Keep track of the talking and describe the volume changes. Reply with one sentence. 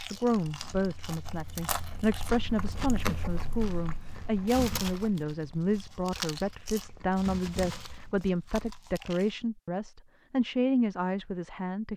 The volume of the talking stays about the same.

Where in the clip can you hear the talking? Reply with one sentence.
The talking can be heard from 0.1 to 11.9 s.